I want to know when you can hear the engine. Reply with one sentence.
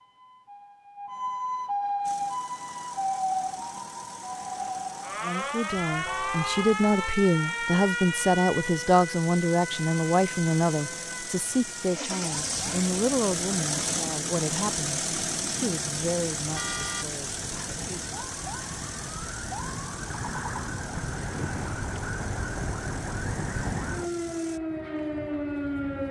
The engine can be heard from 2.0 to 24.6 s.